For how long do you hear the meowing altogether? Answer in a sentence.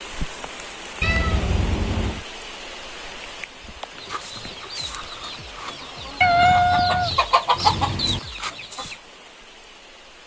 The meowing can be heard for 3 seconds in total.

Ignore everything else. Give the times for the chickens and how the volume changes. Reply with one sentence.
The chickens can be heard from 4.0 to 9.0 s, getting louder then quieter.